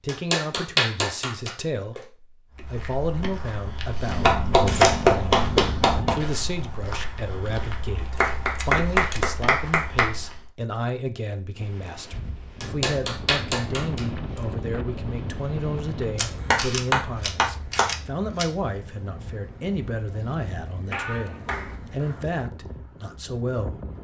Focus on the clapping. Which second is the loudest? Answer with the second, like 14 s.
5 s.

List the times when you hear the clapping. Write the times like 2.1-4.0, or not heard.
0.1-2.0, 4.2-6.2, 8.2-10.1, 12.6-14.1, 16.5-17.9, 20.9-21.8.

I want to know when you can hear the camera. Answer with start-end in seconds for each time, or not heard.
4.0-6.2, 8.2-9.2, 16.1-18.4.